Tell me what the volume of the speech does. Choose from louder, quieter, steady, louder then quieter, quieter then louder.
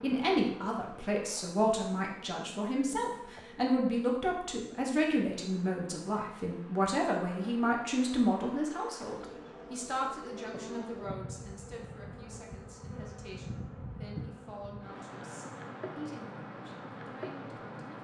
quieter.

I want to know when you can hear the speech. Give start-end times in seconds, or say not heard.
0.0-17.9.